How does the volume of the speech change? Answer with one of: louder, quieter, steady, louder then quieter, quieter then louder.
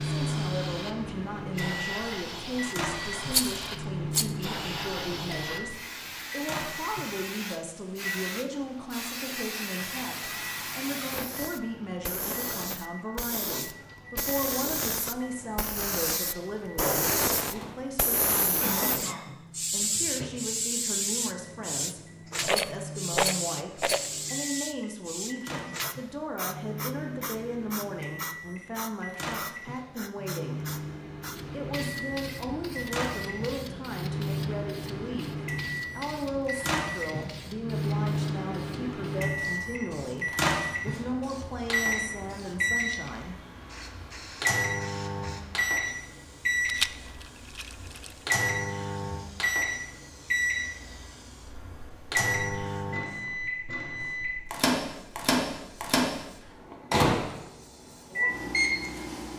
steady.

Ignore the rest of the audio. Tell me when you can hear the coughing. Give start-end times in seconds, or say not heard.
18.6-19.5.